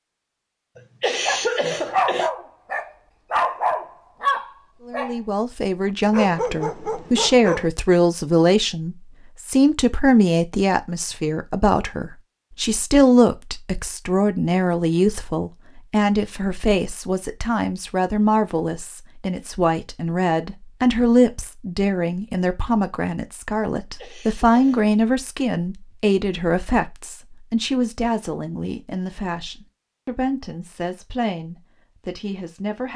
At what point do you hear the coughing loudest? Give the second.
2 s.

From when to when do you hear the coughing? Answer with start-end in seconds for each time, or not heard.
0.8-2.3, 23.9-24.9.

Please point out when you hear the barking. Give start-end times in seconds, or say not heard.
1.2-5.2, 6.1-7.7.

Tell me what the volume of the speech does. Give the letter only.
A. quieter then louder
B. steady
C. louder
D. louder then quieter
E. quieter
E.